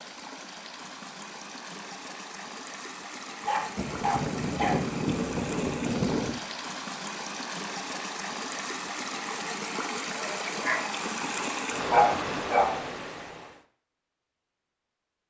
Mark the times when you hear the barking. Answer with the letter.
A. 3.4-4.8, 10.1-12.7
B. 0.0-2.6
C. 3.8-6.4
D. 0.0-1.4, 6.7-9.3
A.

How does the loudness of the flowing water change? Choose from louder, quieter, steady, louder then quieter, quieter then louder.
louder.